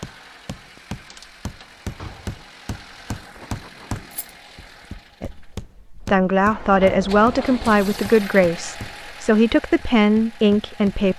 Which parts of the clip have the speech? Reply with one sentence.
The speech can be heard from 5.2 to 11.1 s.